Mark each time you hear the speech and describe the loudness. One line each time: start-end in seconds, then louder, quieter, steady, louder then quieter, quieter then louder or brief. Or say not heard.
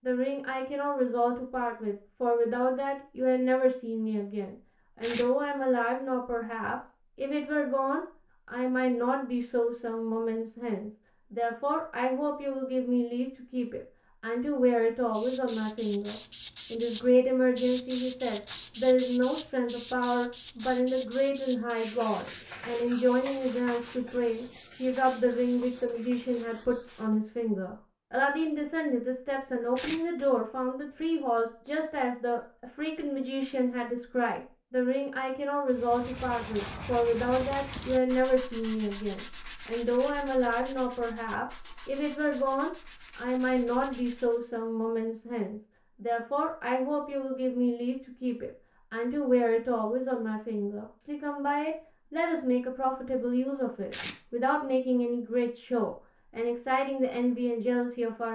0.0-58.3 steady.